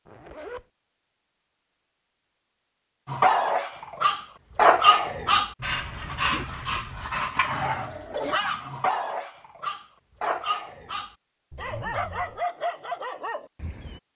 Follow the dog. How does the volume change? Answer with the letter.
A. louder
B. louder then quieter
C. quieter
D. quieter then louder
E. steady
C.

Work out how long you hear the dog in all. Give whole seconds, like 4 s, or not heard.
11 s.